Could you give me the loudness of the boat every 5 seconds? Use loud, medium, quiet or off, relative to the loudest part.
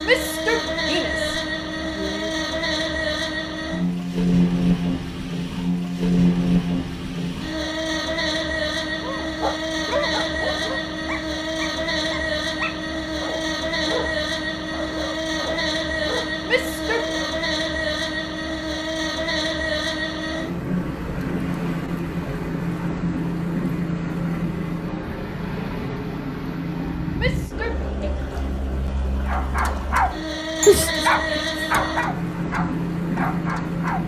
loud, loud, loud, loud, loud, medium, loud.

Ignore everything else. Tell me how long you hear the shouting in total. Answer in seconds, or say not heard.
4 s.